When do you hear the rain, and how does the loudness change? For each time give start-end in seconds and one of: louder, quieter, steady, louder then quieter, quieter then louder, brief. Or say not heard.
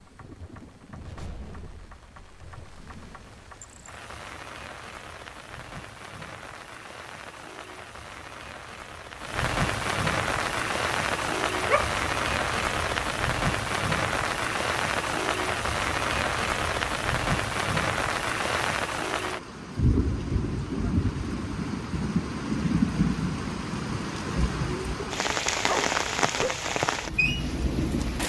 0.0-28.2 louder.